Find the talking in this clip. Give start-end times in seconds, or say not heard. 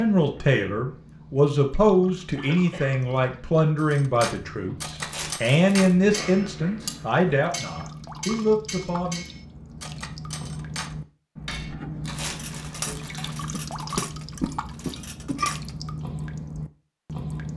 0.0-9.2.